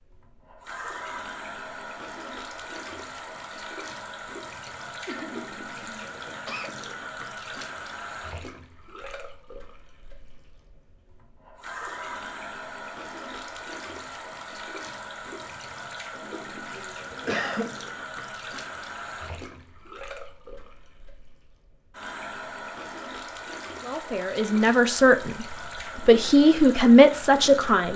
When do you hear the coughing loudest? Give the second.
17 s.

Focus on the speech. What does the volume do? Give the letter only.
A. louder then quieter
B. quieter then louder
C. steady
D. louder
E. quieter
D.